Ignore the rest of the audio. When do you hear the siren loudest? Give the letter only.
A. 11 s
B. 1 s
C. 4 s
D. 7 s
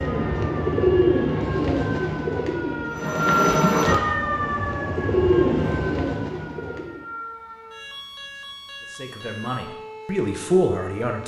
C.